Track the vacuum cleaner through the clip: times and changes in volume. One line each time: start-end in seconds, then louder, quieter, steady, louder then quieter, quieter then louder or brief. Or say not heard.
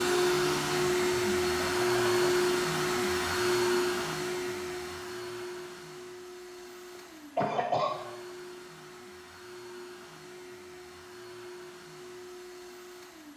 0.0-13.3 quieter.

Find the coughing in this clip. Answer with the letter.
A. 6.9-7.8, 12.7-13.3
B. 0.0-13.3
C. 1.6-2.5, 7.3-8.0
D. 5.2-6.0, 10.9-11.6
C.